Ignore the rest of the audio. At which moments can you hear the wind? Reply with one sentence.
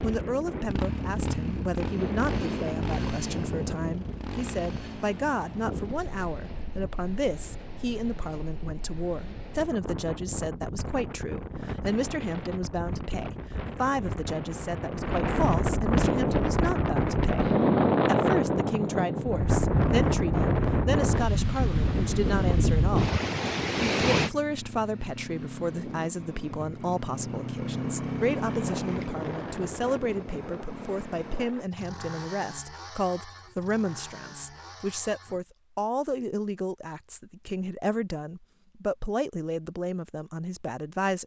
The wind can be heard from 0.0 to 24.3 s.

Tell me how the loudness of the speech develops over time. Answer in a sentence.
The loudness of the speech stays about the same.